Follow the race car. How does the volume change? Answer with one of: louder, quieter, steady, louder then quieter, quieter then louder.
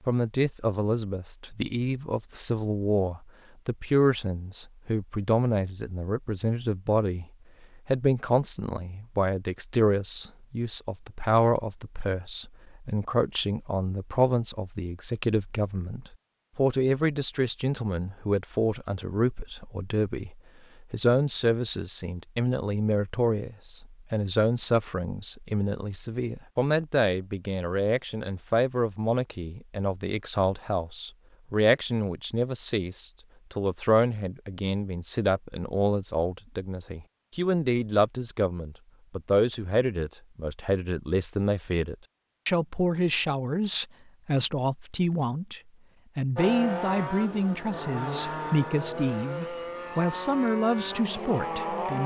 steady.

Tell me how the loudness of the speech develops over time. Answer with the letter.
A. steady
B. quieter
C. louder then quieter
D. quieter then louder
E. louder
A.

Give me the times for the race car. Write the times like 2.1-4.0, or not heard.
46.4-52.0.